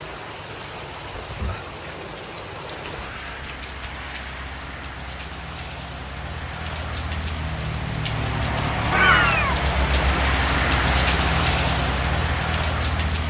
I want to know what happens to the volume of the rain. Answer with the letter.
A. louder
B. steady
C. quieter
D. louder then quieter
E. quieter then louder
A.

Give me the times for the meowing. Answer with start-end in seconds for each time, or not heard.
8.9-9.6.